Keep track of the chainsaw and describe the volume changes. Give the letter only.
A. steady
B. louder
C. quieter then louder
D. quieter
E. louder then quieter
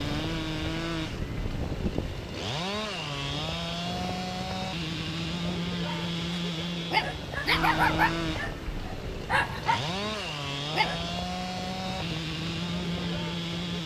A.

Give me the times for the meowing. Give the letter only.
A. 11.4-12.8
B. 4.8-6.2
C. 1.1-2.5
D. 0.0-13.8
C.